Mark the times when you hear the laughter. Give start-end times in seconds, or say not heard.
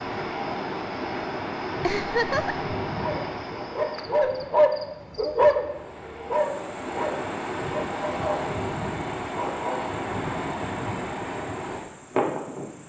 1.8-2.6.